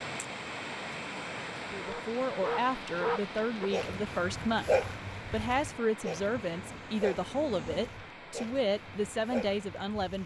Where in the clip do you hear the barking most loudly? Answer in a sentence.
The volume of the barking peaks at 5 seconds.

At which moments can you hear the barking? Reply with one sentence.
You can hear the barking from 1.8 to 10.2 s.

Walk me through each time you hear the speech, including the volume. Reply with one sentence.
You can hear the speech from 1.6 to 10.2 s, at a steady volume.